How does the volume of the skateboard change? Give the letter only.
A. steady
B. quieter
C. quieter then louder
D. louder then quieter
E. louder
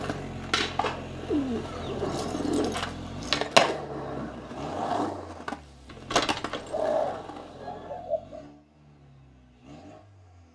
D.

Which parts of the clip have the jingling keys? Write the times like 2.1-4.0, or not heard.
1.9-3.5, 5.8-6.8.